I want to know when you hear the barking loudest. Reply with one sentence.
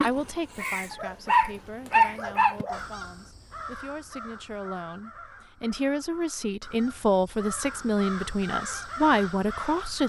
The volume of the barking peaks at 2 seconds.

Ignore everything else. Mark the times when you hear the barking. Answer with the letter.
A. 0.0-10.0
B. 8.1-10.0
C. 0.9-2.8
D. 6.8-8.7
C.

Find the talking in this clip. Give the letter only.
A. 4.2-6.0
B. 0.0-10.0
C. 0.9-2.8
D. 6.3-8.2
B.